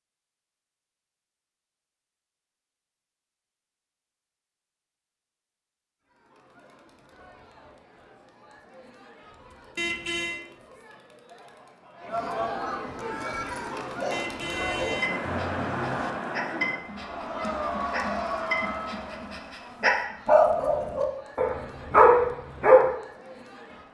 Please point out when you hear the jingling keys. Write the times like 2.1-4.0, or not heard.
not heard.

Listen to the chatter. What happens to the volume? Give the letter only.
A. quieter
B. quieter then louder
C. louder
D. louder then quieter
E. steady
D.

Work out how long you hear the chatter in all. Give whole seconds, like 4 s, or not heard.
18 s.